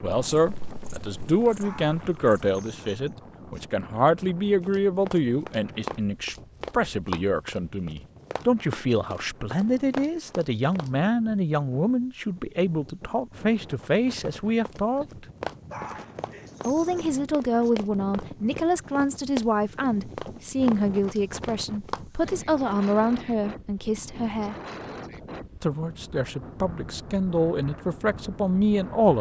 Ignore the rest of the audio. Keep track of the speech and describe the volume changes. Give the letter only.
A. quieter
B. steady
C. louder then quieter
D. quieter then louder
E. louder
B.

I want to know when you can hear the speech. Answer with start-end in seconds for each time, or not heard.
0.0-15.2, 16.6-24.6, 25.6-29.1.